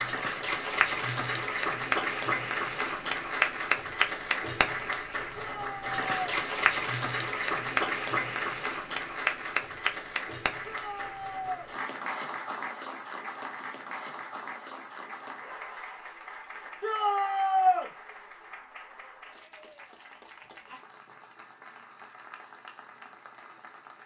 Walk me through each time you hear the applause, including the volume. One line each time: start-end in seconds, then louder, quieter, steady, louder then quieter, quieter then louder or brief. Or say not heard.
0.0-24.0 quieter.